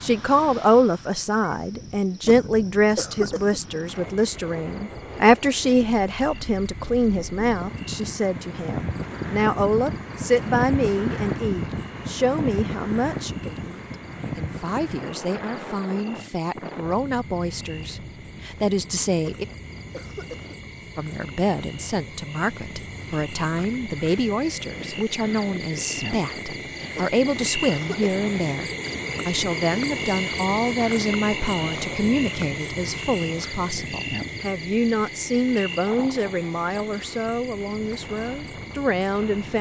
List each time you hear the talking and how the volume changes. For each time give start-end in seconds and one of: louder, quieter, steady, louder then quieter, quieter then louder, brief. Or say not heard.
0.0-19.4 quieter
20.9-39.5 steady.